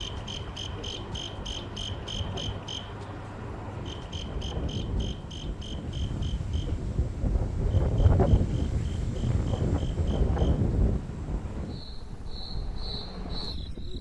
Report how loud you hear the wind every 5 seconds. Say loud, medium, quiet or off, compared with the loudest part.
medium, loud, loud.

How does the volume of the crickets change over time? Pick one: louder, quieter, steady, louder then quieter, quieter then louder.
quieter then louder.